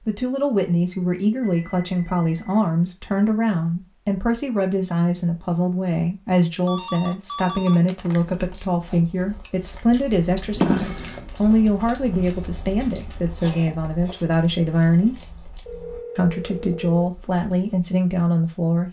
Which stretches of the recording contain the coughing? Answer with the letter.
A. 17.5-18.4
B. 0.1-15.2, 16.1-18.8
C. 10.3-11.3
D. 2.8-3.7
C.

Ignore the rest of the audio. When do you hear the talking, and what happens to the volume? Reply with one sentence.
The talking can be heard from 0.1 to 15.2 s, at a steady volume; and briefly from 16.1 to 18.8 s.